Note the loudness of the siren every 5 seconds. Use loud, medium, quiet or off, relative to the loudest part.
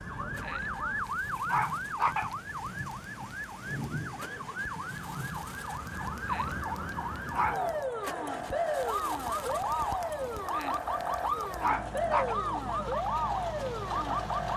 medium, loud, loud.